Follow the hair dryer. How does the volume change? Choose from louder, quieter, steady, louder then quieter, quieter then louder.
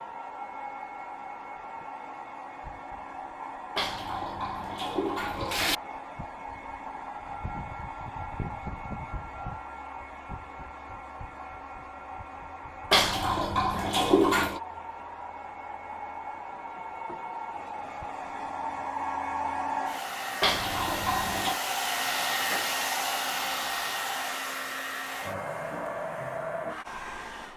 louder.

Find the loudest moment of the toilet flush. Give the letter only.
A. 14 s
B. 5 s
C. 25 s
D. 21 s
A.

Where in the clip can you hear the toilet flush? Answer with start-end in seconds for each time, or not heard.
3.8-5.8, 12.9-14.6, 20.4-21.6.